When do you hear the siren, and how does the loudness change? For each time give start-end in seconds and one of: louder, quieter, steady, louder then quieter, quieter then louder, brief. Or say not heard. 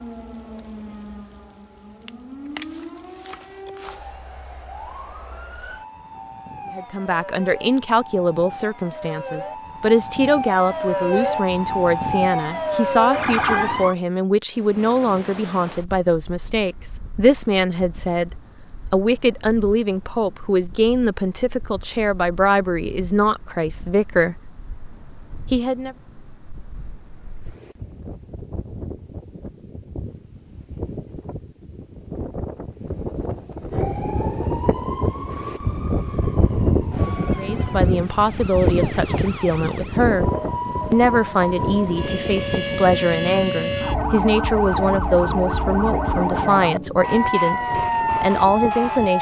0.0-13.9 louder
33.7-49.1 louder.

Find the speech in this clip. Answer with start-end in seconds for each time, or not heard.
6.7-18.3, 18.9-24.5, 25.5-25.9, 37.4-40.2, 40.9-49.1.